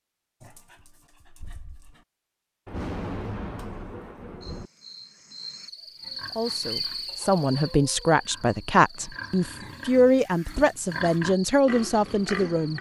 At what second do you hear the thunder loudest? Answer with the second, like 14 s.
3 s.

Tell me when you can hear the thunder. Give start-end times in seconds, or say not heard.
2.6-4.7.